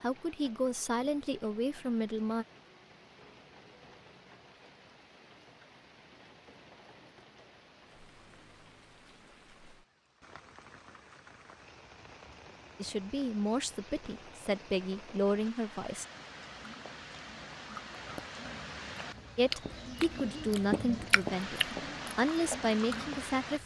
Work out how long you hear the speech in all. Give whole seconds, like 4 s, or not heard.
10 s.